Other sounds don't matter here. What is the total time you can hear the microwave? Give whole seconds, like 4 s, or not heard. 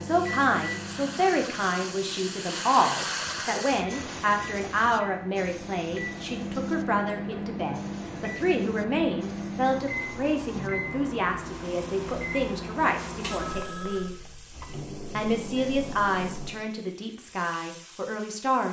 17 s.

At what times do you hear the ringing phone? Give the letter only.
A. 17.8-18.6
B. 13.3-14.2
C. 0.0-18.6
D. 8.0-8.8
B.